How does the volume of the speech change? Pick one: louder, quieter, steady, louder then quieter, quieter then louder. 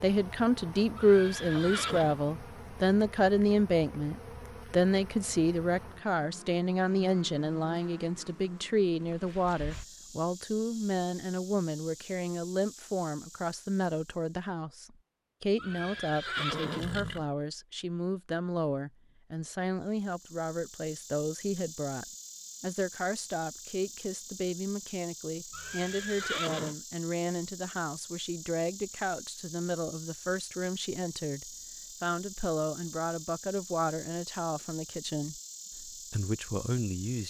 quieter.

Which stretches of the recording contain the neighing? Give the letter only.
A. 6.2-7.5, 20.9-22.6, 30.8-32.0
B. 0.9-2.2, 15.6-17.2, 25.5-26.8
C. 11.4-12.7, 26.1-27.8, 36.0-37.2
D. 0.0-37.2
B.